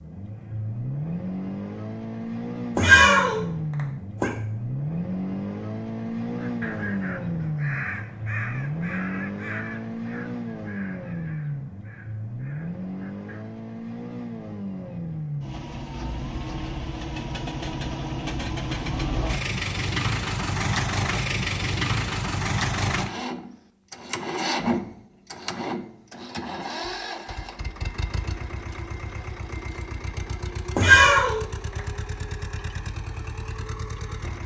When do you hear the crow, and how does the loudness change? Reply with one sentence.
You can hear the crow from 6.3 to 13.4 s, getting quieter.